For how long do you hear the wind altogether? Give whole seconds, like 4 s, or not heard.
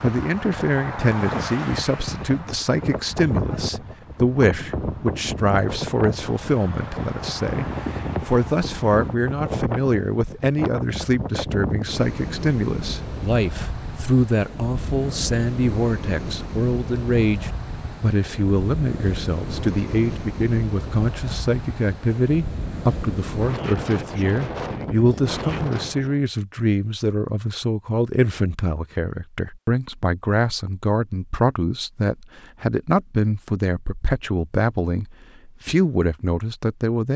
26 s.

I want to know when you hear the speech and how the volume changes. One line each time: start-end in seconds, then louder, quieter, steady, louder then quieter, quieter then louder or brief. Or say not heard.
0.0-37.1 steady.